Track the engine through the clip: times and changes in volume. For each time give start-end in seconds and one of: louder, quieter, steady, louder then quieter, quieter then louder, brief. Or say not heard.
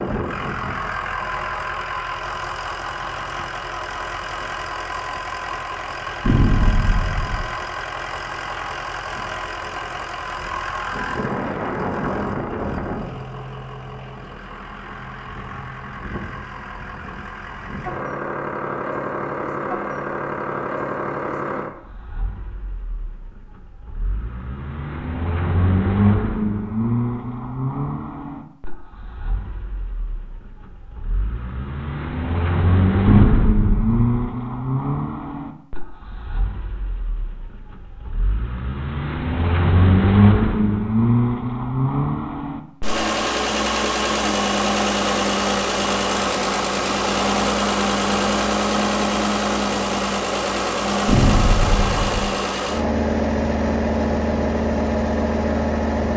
0.0-56.1 louder.